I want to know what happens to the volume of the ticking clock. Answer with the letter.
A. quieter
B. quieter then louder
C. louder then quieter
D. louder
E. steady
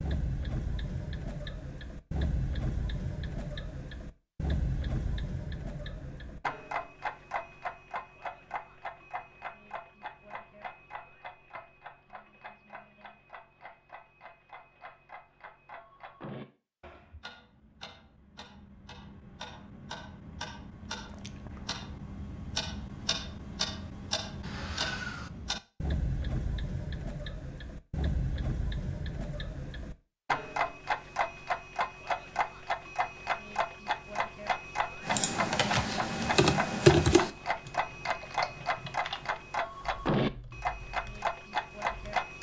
B.